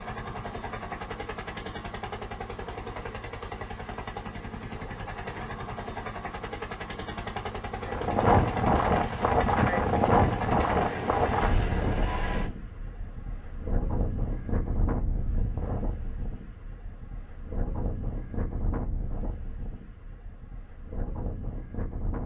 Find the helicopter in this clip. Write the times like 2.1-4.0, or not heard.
0.0-12.5.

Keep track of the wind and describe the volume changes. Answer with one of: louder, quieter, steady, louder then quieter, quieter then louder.
quieter.